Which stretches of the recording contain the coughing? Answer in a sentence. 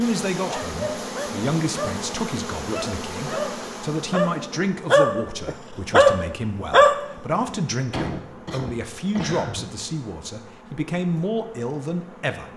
The coughing can be heard from 7.9 to 9.7 s.